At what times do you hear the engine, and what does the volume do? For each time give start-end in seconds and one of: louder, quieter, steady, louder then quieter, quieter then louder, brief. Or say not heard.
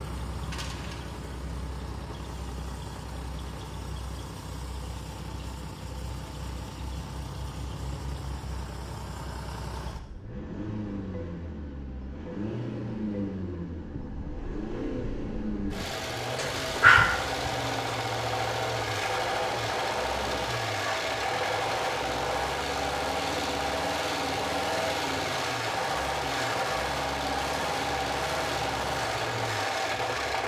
0.0-30.4 louder.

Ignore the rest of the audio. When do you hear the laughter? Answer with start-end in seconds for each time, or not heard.
not heard.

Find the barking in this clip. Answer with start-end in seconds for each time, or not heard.
16.4-17.9.